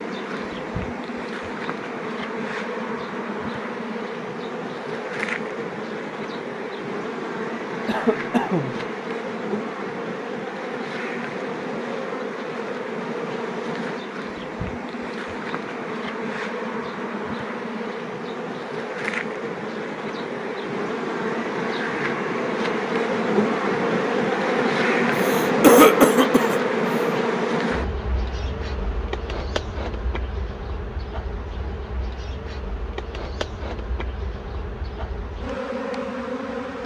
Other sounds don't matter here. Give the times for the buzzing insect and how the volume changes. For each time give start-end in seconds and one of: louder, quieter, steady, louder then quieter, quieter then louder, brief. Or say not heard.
0.0-36.8 louder then quieter.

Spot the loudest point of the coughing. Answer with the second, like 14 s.
26 s.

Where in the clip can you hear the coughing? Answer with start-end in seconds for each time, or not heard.
7.8-8.8, 25.1-26.6.